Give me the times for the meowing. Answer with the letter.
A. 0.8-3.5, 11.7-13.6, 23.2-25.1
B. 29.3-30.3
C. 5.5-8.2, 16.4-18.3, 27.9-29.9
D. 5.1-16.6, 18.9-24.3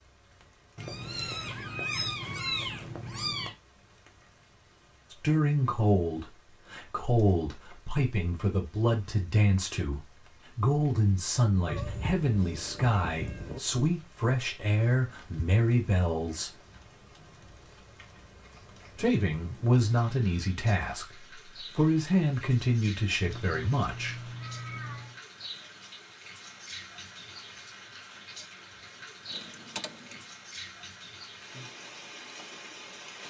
A.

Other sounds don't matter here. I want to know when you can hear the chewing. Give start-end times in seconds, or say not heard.
not heard.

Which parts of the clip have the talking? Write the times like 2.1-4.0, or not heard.
5.1-16.6, 18.9-24.3.